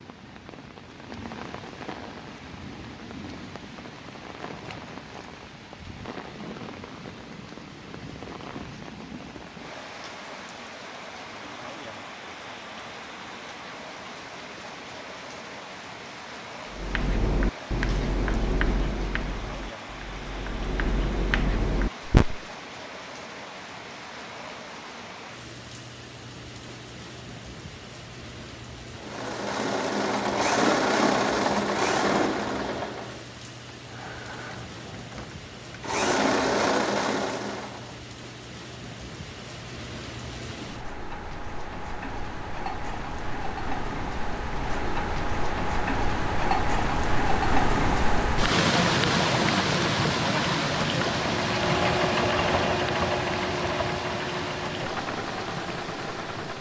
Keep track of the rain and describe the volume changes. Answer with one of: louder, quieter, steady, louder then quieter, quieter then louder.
louder.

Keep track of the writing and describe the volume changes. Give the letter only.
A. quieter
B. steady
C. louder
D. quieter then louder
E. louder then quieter
D.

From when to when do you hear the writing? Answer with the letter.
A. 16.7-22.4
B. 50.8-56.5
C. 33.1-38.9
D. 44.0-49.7
A.